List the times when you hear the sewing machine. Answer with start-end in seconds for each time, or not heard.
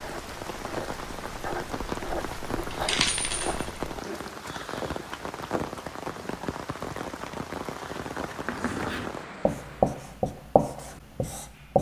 not heard.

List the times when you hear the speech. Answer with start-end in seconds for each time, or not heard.
not heard.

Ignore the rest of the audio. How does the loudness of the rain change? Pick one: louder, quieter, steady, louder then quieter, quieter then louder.
steady.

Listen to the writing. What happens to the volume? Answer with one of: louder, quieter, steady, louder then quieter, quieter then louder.
louder.